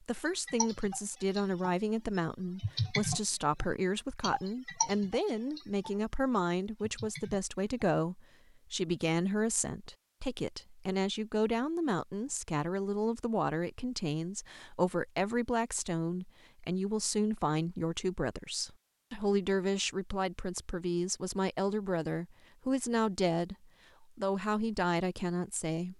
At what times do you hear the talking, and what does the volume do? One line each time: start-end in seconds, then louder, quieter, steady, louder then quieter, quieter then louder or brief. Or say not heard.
0.0-25.9 steady.